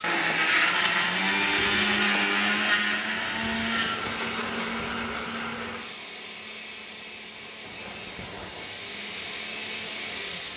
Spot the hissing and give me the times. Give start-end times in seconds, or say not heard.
0.0-10.5.